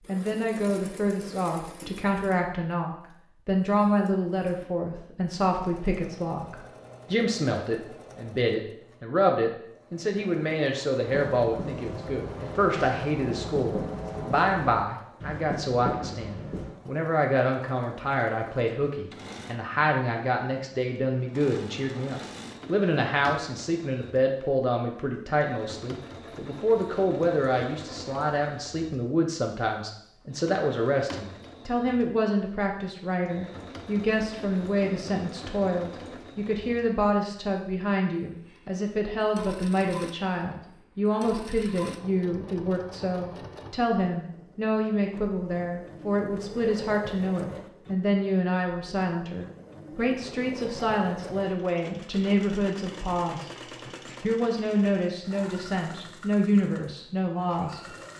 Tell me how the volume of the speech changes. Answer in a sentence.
The volume of the speech stays about the same.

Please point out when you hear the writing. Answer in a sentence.
The writing can be heard from 11.1 to 16.8 s.